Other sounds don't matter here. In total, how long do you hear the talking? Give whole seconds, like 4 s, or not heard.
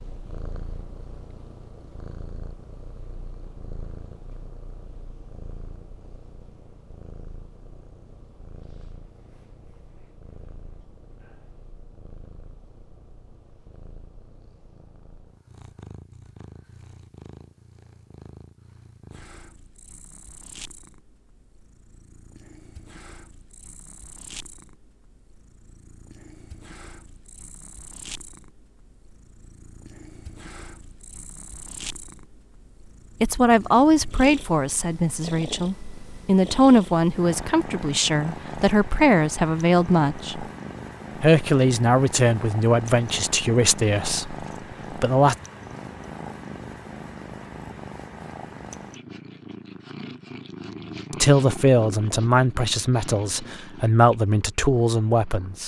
16 s.